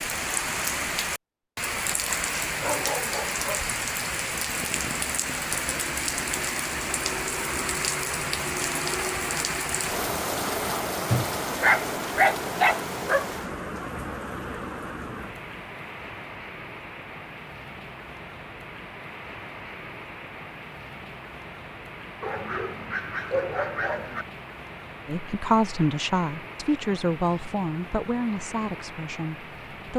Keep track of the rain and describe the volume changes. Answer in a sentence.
The loudness of the rain goes down.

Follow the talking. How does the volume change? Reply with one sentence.
The volume of the talking goes down.